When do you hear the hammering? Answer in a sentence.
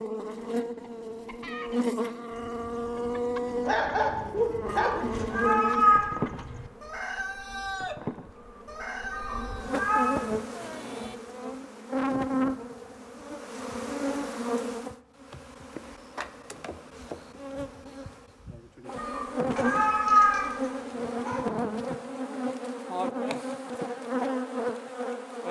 The hammering can't be heard in this clip.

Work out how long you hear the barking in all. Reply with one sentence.
The barking can be heard for 4 seconds in total.